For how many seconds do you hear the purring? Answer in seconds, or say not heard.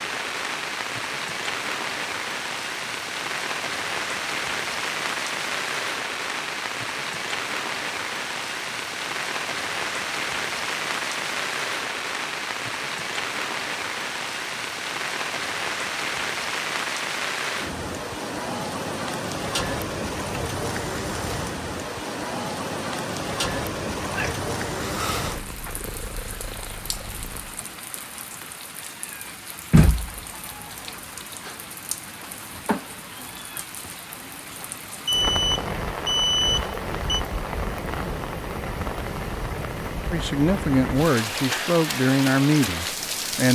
4 s.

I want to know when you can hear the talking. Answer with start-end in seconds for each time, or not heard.
40.1-43.4.